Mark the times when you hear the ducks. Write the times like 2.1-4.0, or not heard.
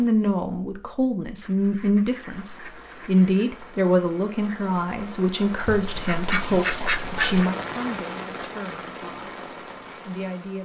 1.4-3.5, 5.6-7.5.